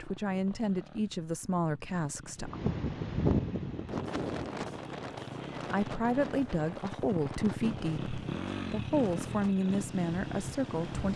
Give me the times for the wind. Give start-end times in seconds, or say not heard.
2.4-11.1.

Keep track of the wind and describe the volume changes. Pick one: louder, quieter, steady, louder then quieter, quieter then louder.
quieter.